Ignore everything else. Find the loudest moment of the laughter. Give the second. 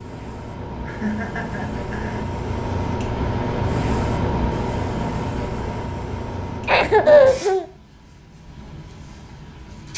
7 s.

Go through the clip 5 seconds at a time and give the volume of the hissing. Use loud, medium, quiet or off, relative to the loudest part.
loud, medium.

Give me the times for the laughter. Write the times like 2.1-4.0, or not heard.
0.8-2.2, 6.7-7.7.